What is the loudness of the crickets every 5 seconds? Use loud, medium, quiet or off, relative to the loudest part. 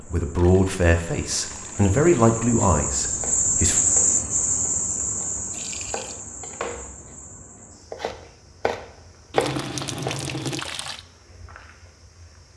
loud, medium, quiet.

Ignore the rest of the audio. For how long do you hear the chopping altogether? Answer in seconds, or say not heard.
7 s.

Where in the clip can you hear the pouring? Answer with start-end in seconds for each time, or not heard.
0.3-2.5, 5.5-6.2, 9.3-11.1.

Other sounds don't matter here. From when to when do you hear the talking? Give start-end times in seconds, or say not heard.
0.0-3.8.